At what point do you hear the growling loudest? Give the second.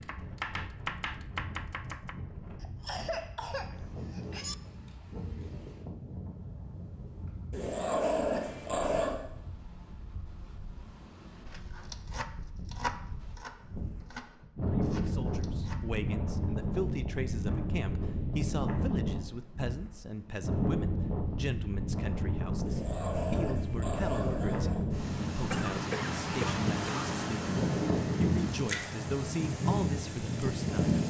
8 s.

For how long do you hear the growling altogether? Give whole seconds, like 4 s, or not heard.
4 s.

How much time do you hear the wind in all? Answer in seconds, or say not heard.
31 s.